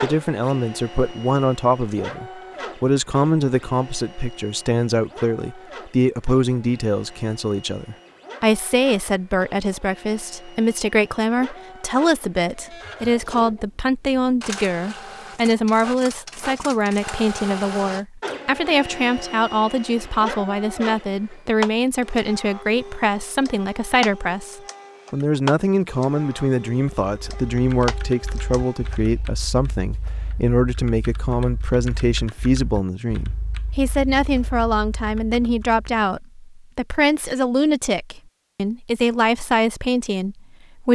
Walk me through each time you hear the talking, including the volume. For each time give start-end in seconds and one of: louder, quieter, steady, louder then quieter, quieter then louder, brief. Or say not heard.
0.0-40.9 steady.